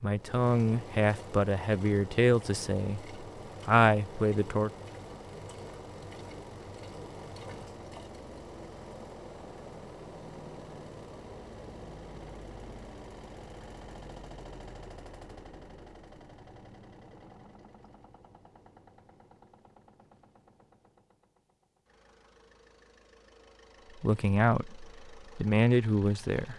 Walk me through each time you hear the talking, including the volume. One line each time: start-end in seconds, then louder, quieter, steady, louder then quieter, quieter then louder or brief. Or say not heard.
0.0-4.7 quieter then louder
24.0-26.5 brief.